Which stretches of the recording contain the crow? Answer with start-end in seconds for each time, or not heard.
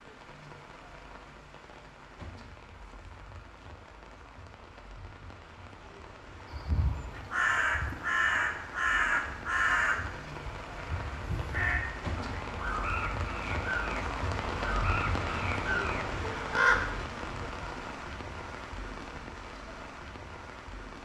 6.5-16.9.